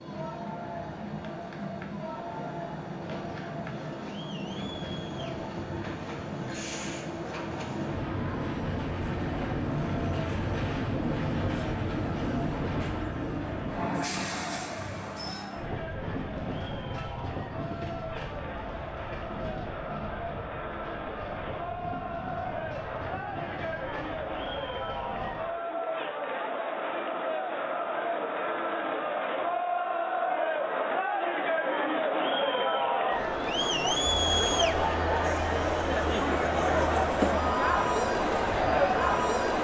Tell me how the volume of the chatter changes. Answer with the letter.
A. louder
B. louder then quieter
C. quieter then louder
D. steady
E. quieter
A.